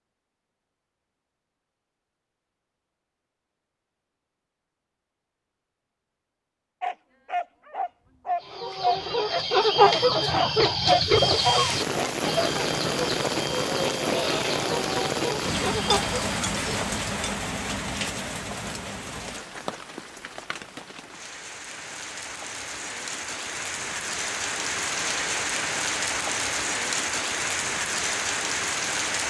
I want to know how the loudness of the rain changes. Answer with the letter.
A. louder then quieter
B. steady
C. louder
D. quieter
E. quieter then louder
E.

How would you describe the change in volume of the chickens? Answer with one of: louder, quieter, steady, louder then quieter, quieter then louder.
quieter.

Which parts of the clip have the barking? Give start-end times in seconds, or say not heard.
6.8-12.5.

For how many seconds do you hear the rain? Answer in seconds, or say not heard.
18 s.